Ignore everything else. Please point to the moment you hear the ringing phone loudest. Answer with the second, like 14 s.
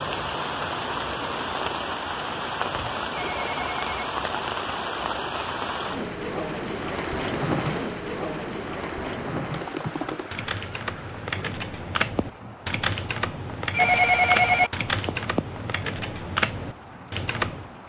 14 s.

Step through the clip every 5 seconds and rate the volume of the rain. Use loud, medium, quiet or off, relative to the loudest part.
loud, loud, quiet, medium.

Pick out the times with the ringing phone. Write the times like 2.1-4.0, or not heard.
3.1-4.0, 13.7-14.7.